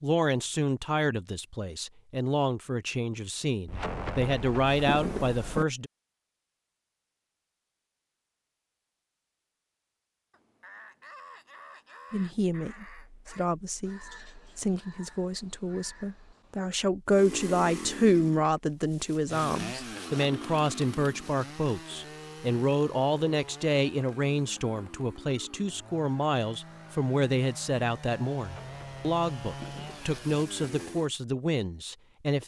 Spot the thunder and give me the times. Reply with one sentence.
The thunder can be heard from 3.6 to 5.7 s and from 28.4 to 30.2 s.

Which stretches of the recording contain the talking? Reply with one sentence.
You can hear the talking from 0.0 to 5.9 s and from 12.1 to 32.4 s.